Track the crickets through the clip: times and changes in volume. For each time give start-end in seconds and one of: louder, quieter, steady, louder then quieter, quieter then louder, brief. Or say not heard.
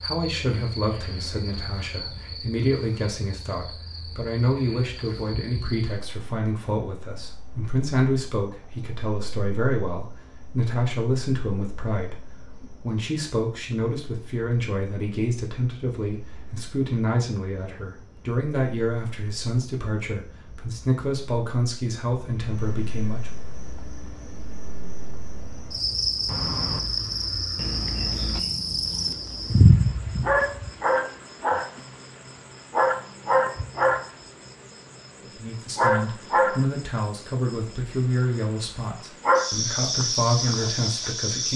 0.0-41.5 quieter then louder.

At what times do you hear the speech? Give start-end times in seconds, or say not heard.
0.0-23.3, 35.2-41.5.